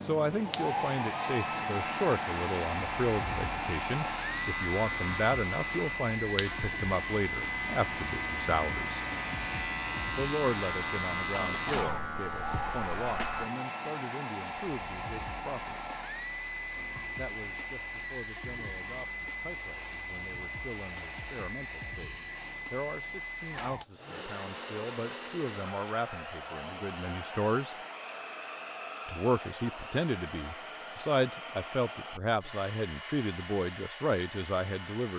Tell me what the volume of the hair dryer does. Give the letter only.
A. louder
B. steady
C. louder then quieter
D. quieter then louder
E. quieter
E.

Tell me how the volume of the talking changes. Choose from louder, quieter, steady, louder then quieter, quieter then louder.
quieter then louder.